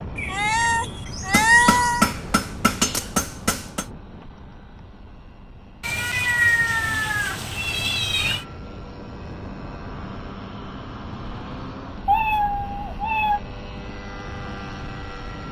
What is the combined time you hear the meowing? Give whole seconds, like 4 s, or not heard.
6 s.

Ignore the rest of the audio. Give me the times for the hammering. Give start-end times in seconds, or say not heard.
1.3-3.9.